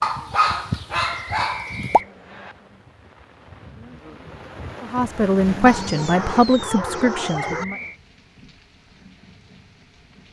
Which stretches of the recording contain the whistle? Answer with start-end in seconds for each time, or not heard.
1.0-2.5, 7.3-8.0.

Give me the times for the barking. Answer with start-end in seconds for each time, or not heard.
0.0-2.0, 5.7-7.7.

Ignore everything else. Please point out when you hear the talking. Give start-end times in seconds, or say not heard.
4.8-7.8.